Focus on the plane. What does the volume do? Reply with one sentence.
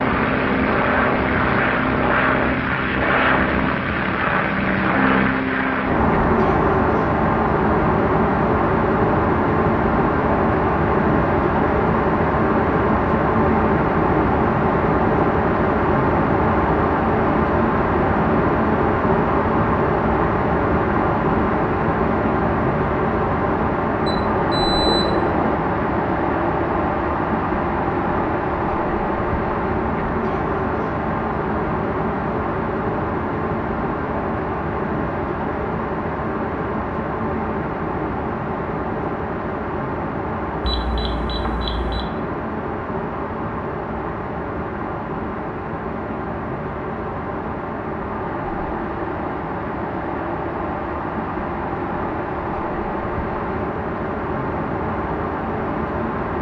The loudness of the plane goes down.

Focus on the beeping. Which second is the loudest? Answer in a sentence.
The volume of the beeping peaks at 25 seconds.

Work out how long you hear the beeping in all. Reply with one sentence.
The beeping can be heard for 3 seconds in total.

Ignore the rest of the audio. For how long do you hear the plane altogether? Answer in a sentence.
The plane can be heard for 56 seconds in total.